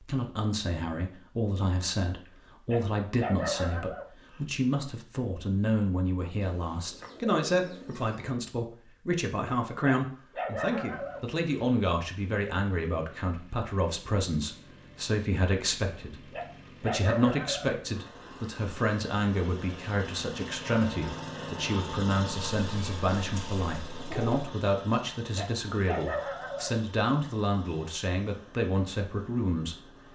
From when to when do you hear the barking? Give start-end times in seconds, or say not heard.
2.6-4.4, 9.8-11.6, 16.3-17.7, 25.4-27.3.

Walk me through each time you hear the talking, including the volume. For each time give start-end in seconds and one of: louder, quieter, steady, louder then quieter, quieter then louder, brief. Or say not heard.
0.0-29.9 steady.